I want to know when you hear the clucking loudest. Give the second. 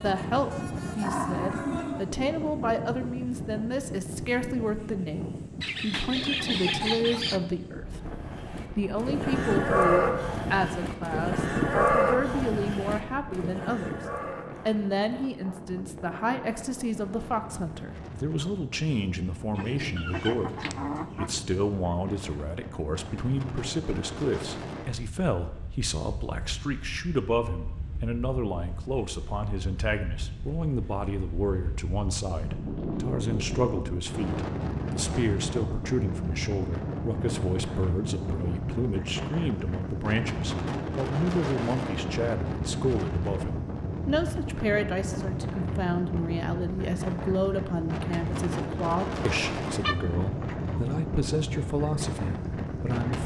7 s.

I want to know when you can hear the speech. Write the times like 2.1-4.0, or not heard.
0.0-14.0, 14.7-53.2.